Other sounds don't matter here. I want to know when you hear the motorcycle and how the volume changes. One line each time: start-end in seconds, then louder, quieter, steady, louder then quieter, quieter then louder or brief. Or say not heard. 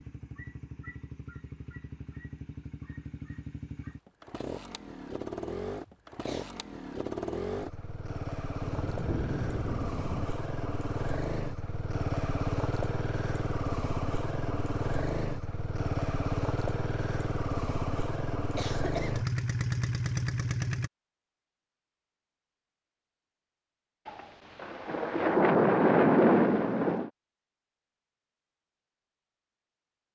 0.0-20.9 louder.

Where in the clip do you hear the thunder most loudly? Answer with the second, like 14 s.
26 s.